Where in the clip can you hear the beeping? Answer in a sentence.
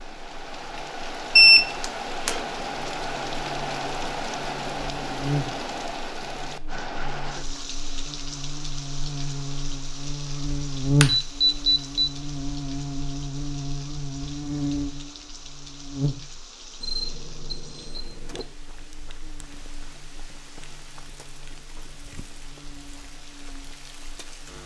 You can hear the beeping from 1.4 to 2.4 s, from 11.0 to 12.1 s and from 16.8 to 18.4 s.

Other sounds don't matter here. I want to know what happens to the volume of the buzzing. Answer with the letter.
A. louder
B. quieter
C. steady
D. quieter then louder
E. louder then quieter
E.